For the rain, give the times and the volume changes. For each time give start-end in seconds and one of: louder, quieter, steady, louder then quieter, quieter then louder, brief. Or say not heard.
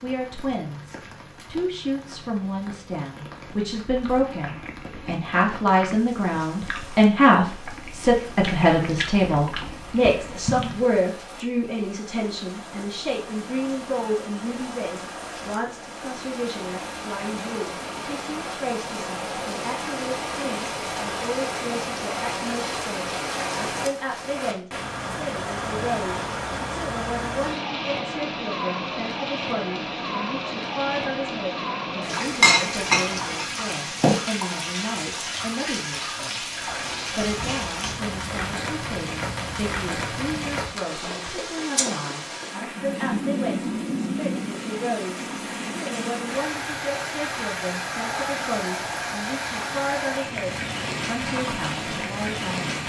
0.0-52.8 louder.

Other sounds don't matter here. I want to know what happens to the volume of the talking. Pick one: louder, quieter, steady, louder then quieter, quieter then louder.
quieter.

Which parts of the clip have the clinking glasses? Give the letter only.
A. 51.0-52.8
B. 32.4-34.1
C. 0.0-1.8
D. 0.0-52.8
B.